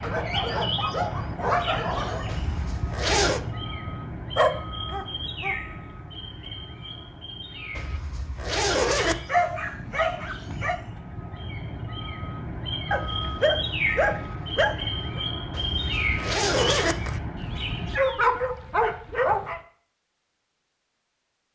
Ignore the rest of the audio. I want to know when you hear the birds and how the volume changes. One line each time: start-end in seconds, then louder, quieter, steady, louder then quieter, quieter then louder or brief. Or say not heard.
0.0-18.0 quieter then louder.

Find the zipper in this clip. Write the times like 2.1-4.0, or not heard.
2.2-3.4, 7.8-9.3, 15.5-17.2.